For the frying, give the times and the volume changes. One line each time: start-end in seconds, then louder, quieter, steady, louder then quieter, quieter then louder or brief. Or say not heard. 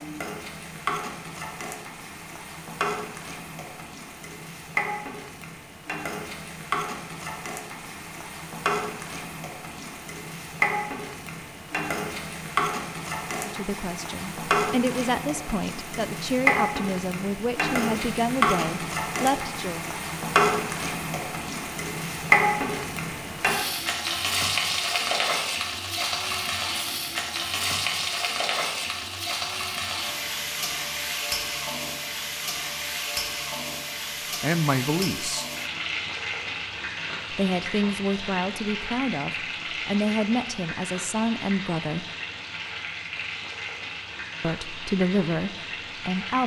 0.0-46.4 louder then quieter.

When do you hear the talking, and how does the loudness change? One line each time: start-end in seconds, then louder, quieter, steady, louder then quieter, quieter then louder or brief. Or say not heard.
13.4-19.9 steady
34.4-35.5 brief
37.3-42.0 steady
44.4-46.4 brief.